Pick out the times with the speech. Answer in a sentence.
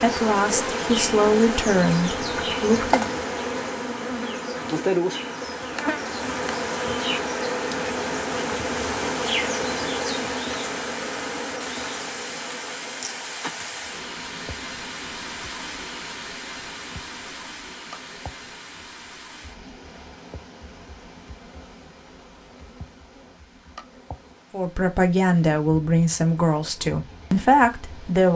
The speech can be heard from 0.0 to 3.1 s and from 24.5 to 28.3 s.